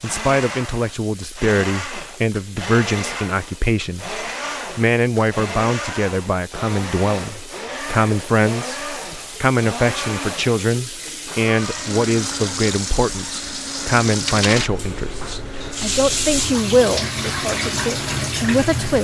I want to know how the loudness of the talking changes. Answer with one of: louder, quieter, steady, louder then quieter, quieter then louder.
steady.